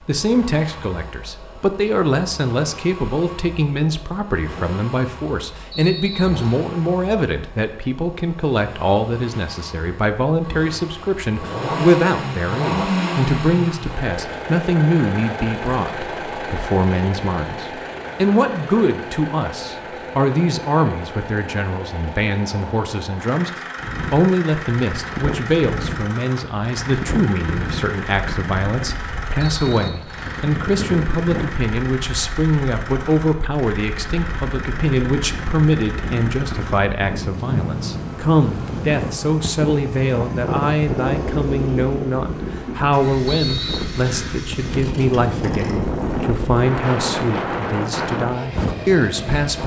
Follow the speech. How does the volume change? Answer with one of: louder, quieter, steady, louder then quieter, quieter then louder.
steady.